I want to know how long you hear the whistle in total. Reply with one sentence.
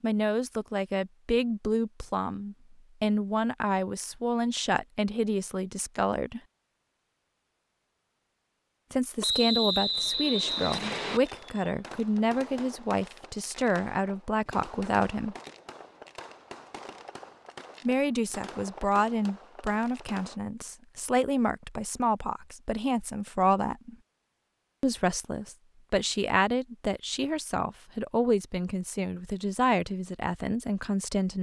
The whistle can be heard for 2 seconds in total.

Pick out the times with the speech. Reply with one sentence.
The speech can be heard from 0.0 to 6.4 s, from 8.9 to 15.3 s, from 17.9 to 23.9 s and from 24.8 to 31.3 s.